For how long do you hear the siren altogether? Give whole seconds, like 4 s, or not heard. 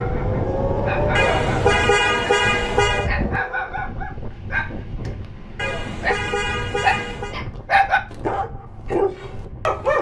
4 s.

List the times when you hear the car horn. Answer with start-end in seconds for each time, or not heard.
1.1-3.1, 5.5-7.3.